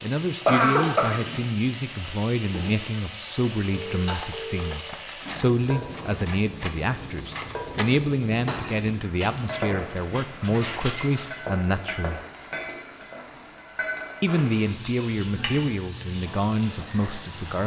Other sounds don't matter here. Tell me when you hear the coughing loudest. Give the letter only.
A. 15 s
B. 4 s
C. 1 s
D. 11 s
C.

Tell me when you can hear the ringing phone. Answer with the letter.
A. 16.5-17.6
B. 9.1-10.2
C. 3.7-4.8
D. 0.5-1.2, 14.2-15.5
C.